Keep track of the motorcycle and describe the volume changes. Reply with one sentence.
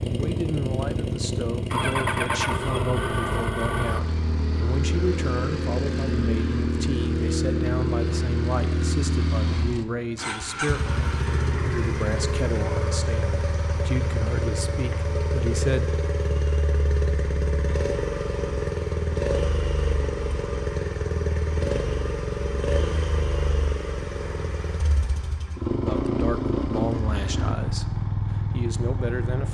The loudness of the motorcycle stays about the same.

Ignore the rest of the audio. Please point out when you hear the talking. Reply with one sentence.
You can hear the talking from 0.1 to 15.9 s and from 25.8 to 29.4 s.